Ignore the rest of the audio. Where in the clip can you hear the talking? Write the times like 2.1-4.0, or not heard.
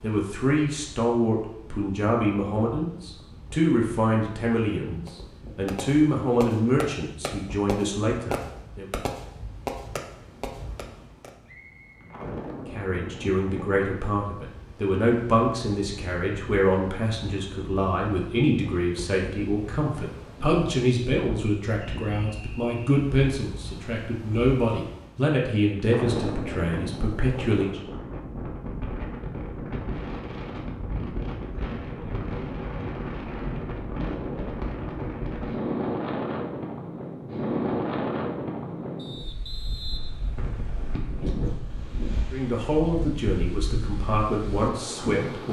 0.0-8.8, 12.7-27.8, 42.3-45.4.